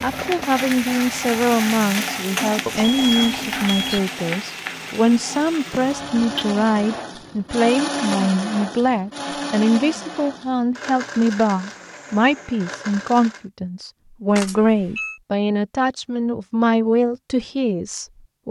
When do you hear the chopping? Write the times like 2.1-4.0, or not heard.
not heard.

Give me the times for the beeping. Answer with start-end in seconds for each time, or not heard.
2.6-4.0, 14.3-15.2.